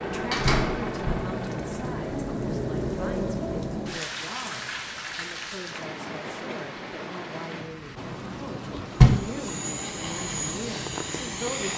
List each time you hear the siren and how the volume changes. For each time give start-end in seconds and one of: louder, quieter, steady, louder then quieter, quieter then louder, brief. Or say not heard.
not heard.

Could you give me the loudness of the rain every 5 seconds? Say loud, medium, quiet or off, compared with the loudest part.
loud, medium, medium.